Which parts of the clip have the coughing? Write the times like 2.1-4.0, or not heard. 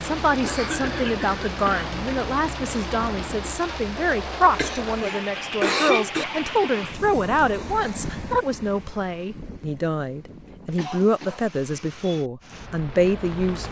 0.4-1.9, 4.5-6.2, 10.8-11.6.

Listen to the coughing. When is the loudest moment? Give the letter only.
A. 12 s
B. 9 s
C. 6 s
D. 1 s
C.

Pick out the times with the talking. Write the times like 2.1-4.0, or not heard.
0.0-13.6.